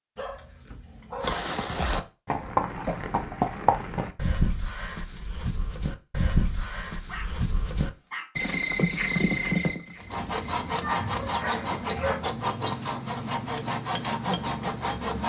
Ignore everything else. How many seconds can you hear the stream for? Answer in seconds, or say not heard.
not heard.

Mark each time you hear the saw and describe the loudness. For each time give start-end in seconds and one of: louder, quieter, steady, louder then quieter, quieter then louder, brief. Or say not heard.
9.9-15.2 steady.